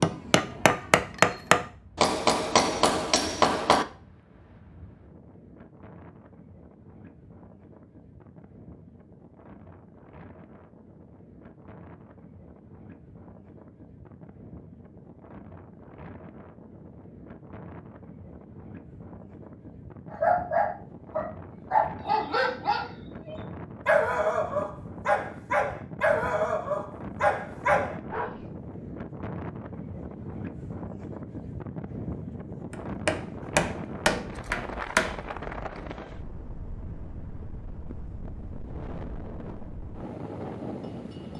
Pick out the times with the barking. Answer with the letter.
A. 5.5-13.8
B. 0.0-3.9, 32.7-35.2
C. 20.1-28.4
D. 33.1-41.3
C.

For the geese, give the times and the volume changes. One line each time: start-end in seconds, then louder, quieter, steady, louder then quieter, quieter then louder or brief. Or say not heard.
not heard.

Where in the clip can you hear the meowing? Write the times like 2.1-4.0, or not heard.
not heard.